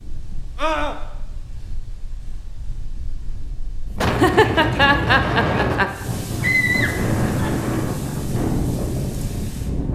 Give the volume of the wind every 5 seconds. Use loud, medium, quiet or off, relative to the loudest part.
medium, loud.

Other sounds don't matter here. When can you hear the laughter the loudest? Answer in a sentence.
The volume of the laughter peaks at 4 seconds.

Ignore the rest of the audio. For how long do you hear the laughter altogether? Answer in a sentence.
You can hear the laughter for 2 seconds altogether.